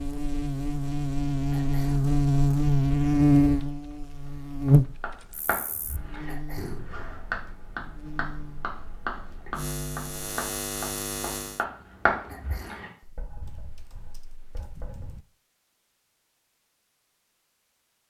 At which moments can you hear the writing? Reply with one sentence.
The writing can be heard from 4.2 to 15.2 s.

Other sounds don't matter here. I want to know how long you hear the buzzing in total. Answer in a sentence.
You can hear the buzzing for 12 seconds altogether.